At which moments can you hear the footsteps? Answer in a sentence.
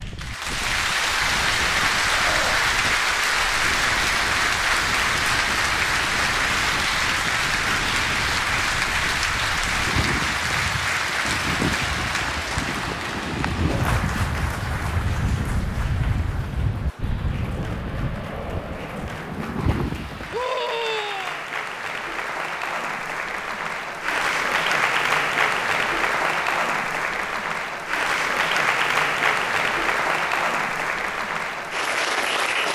The footsteps can't be heard in this clip.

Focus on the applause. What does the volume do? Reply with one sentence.
The volume of the applause goes down, then up.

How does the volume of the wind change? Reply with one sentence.
The volume of the wind goes up.